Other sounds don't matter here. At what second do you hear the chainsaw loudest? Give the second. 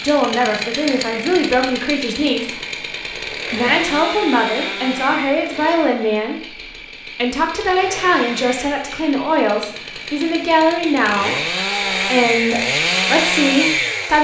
13 s.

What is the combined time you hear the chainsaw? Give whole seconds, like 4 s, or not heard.
14 s.